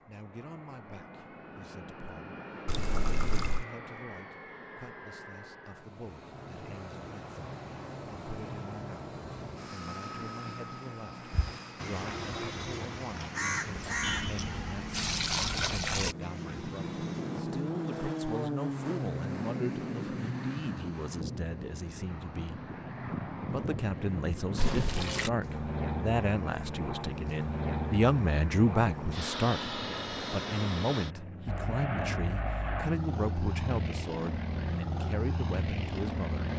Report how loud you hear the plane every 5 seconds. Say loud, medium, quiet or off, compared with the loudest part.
medium, medium, medium, loud, loud, loud, loud, loud.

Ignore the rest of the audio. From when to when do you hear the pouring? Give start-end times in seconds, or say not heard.
2.6-3.6, 13.8-16.1, 24.6-25.3.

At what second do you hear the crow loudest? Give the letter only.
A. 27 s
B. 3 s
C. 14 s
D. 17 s
C.